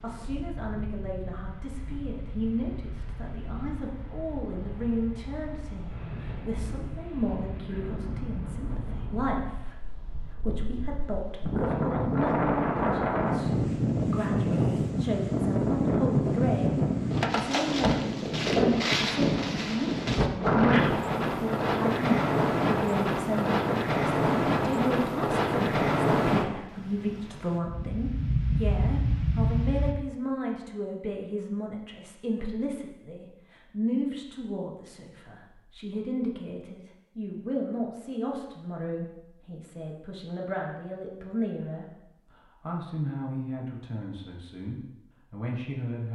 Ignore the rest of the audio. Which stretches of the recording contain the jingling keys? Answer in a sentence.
You can't hear the jingling keys here.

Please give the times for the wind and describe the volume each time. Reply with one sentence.
The wind can be heard from 0.0 to 29.9 s, getting louder.